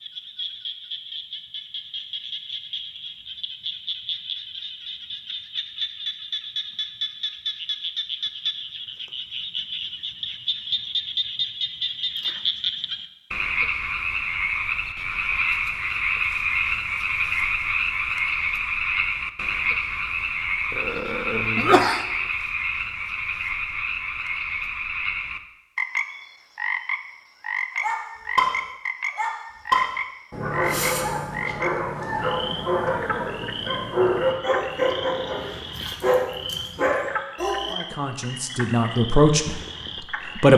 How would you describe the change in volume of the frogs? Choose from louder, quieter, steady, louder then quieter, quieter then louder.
louder then quieter.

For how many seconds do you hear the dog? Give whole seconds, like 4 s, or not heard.
10 s.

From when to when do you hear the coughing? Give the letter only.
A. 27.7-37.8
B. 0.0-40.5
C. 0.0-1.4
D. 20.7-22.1
D.